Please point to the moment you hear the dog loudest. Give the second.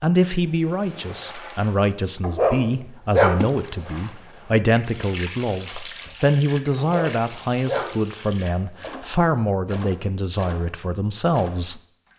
3 s.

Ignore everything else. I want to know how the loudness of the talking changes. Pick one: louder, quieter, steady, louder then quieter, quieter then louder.
steady.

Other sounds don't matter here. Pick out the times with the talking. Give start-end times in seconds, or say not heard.
0.0-11.8.